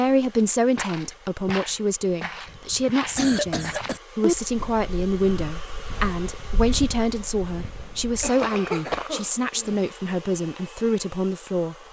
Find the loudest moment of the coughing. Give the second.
4 s.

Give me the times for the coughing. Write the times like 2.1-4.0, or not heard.
2.5-4.3, 8.2-9.8.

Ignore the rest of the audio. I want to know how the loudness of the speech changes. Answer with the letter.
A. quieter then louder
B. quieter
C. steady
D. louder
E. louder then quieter
C.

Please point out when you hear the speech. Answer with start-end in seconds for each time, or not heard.
0.0-11.8.